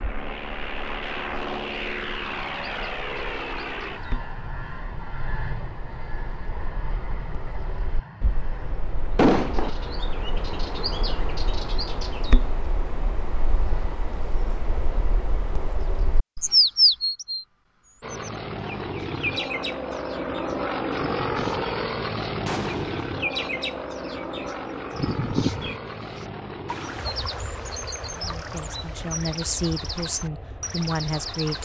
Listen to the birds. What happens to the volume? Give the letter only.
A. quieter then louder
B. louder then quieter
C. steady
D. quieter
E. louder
B.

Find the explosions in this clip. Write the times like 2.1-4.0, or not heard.
9.2-9.7, 22.4-23.1.